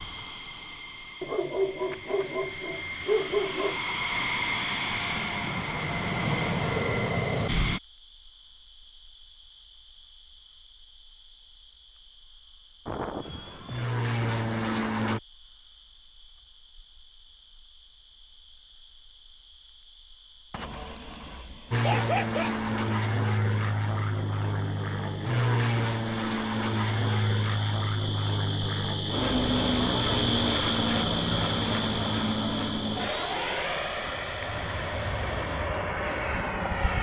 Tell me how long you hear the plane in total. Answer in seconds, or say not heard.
25 s.